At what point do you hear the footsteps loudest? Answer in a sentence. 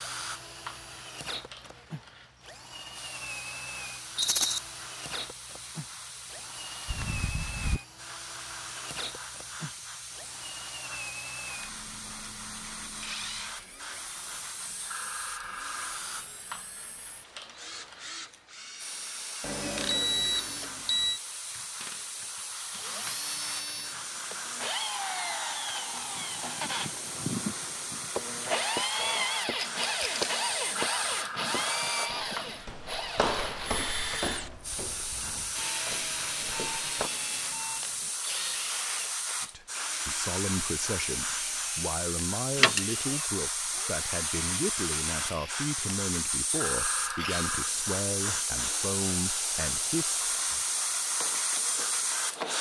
The volume of the footsteps peaks at 33 seconds.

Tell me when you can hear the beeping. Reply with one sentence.
The beeping can be heard from 6.8 to 7.8 s, from 19.4 to 21.2 s and from 35.5 to 38.1 s.